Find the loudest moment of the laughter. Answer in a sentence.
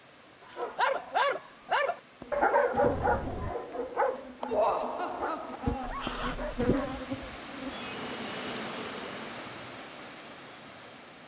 The loudest moment of the laughter is at 5 seconds.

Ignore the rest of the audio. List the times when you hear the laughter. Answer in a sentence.
You can hear the laughter from 4.5 to 6.0 s.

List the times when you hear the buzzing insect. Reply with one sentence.
You can hear the buzzing insect from 2.2 to 9.4 s.